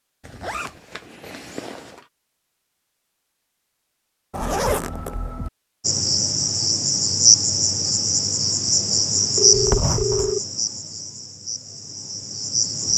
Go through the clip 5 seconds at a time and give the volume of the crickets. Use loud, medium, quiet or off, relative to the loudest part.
off, loud, medium.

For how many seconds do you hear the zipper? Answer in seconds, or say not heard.
4 s.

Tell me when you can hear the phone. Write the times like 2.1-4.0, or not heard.
9.3-10.4.